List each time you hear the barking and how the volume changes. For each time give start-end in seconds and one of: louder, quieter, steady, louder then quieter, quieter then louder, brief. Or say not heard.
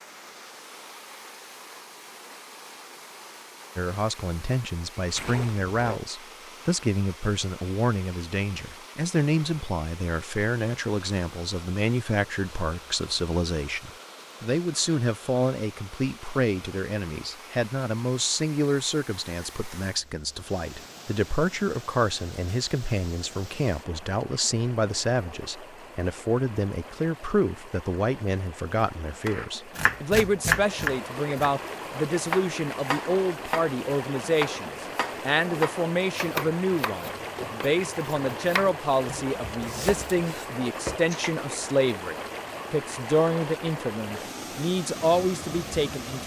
not heard.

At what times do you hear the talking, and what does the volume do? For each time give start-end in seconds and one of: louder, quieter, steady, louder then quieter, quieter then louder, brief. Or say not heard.
3.8-46.2 steady.